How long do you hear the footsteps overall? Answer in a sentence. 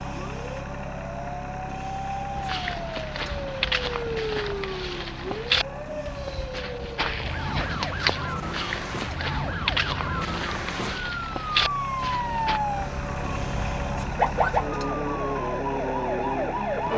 You can hear the footsteps for 10 seconds altogether.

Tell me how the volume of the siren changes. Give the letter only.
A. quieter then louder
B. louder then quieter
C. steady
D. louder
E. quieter
D.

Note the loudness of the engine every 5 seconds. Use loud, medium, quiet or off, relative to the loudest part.
loud, medium, loud, loud.